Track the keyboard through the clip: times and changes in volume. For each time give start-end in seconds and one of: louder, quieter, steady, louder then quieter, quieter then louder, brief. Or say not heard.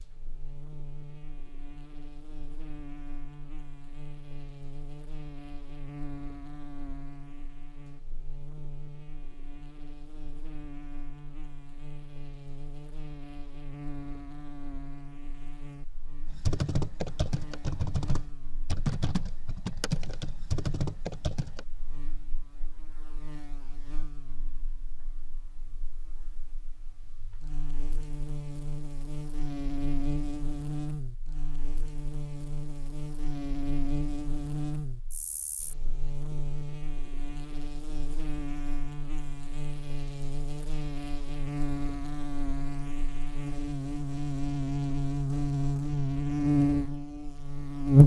16.2-21.6 steady.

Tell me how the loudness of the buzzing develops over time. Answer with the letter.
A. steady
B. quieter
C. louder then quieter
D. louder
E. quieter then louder
D.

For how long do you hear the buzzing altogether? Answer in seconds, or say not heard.
48 s.